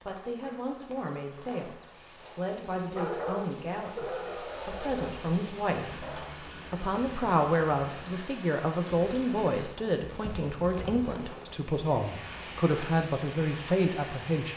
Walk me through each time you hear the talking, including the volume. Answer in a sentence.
You can hear the talking from 0.1 to 14.5 s, getting louder.